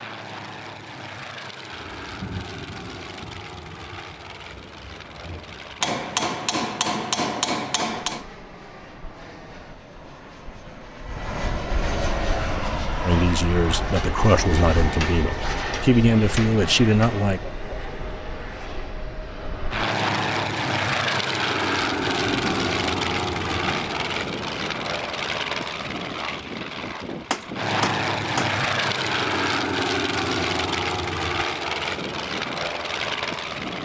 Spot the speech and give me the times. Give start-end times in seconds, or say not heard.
13.0-17.4.